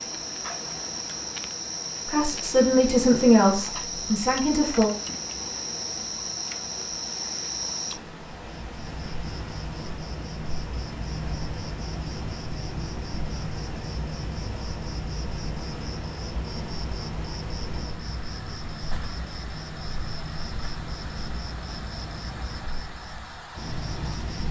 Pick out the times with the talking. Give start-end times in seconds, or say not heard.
2.0-4.9.